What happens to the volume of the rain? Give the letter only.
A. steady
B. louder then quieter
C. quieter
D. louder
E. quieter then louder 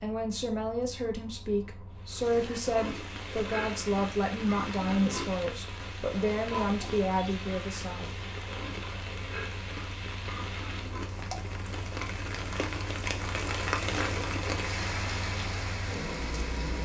D.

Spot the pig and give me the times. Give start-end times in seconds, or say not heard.
2.1-11.2.